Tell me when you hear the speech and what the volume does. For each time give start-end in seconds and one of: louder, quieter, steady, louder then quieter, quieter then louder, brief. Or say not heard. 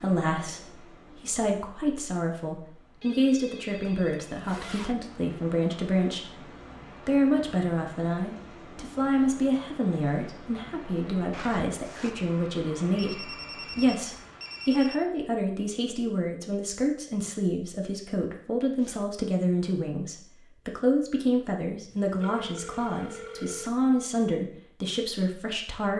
0.0-25.9 steady.